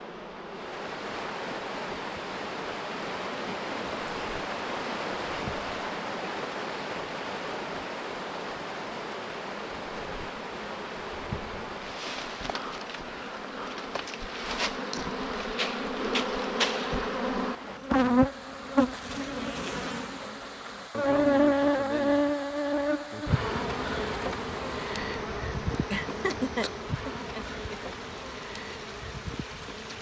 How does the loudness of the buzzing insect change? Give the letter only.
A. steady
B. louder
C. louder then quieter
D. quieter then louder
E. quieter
C.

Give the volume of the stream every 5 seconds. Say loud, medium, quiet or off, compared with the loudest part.
loud, loud, medium, medium, medium, medium.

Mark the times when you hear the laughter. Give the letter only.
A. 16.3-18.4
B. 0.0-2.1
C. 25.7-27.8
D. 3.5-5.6
C.